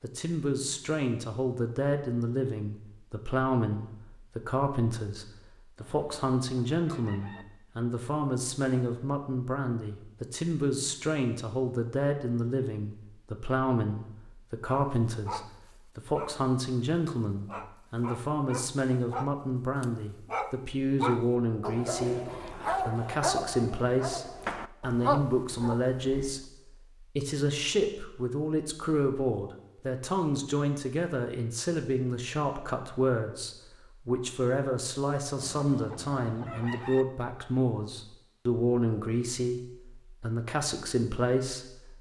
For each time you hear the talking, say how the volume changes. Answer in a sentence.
You can hear the talking from 0.0 to 41.9 s, at a steady volume.